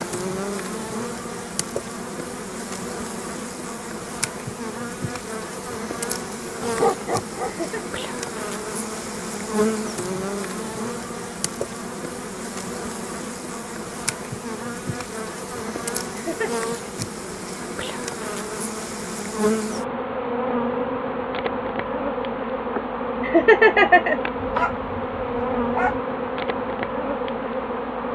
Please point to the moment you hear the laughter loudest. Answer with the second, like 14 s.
24 s.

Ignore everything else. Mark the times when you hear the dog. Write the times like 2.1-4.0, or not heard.
6.6-7.5, 24.4-26.0.